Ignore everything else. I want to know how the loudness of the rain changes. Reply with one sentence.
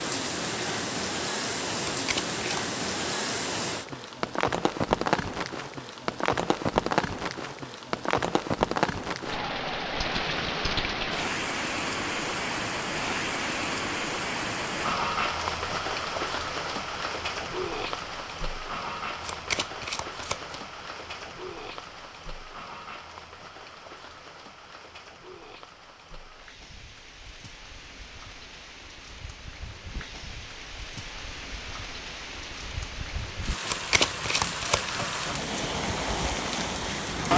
The loudness of the rain goes down, then up.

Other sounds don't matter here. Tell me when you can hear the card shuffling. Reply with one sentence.
The card shuffling can be heard from 1.9 to 2.6 s, from 19.2 to 20.6 s and from 33.6 to 34.8 s.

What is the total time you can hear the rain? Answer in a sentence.
The rain can be heard for 37 seconds in total.